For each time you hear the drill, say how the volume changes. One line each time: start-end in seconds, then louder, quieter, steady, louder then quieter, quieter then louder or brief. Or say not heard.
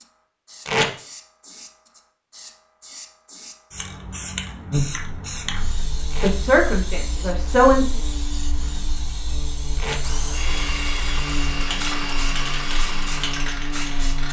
10.0-14.2 quieter.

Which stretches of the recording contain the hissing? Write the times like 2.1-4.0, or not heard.
0.0-14.2.